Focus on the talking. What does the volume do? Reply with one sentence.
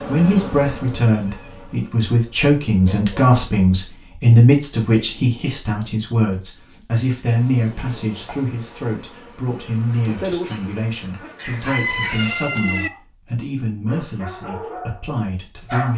The volume of the talking goes down.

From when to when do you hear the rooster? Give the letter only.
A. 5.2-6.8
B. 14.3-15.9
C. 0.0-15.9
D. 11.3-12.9
D.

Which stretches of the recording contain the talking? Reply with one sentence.
You can hear the talking from 0.0 to 15.9 s.